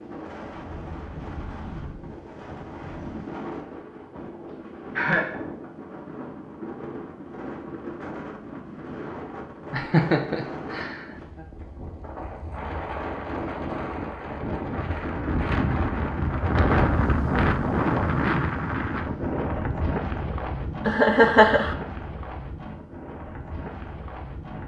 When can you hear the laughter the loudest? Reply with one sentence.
The loudest moment of the laughter is at 21 seconds.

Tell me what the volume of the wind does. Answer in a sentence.
The loudness of the wind goes up, then down.